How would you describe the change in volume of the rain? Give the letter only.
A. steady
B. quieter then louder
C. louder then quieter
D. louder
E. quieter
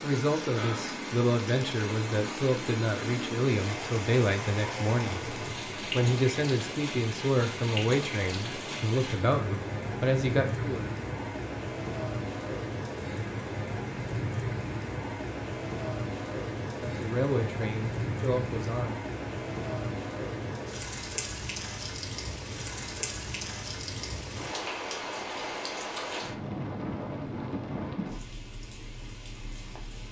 A.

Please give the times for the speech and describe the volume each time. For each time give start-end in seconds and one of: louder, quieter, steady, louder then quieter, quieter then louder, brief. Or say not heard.
0.0-10.9 steady
16.8-19.0 brief.